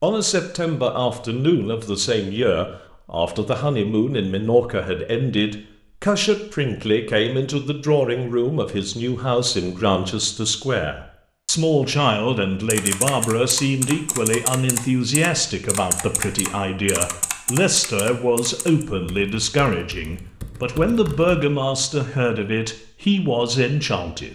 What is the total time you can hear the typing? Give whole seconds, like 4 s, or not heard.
9 s.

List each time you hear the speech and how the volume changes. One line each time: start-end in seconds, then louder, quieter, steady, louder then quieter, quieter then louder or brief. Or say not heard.
0.0-24.3 steady.